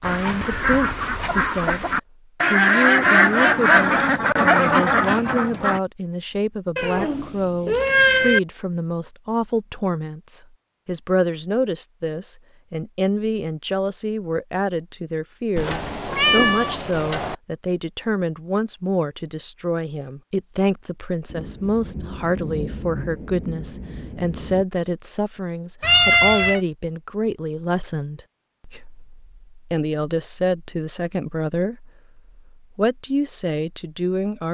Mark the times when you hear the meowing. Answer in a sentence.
The meowing can be heard from 6.8 to 8.4 s, from 15.6 to 17.4 s and from 25.8 to 26.6 s.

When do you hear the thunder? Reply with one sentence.
The thunder can be heard from 21.3 to 24.6 s.